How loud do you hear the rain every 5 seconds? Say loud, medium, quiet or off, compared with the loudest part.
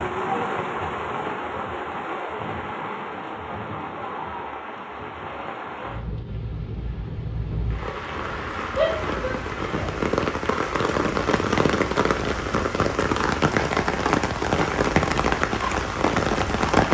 medium, medium, loud, loud.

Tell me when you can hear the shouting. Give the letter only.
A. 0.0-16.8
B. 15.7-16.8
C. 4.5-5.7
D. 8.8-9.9
D.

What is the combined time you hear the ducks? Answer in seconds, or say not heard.
not heard.